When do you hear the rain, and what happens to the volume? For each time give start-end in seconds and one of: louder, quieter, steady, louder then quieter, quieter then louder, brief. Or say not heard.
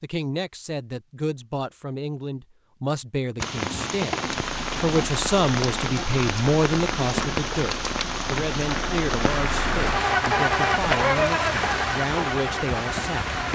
3.4-13.4 steady.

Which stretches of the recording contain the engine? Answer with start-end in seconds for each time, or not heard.
4.4-13.4.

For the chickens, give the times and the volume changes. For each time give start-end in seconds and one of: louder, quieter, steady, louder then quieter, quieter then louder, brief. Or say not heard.
not heard.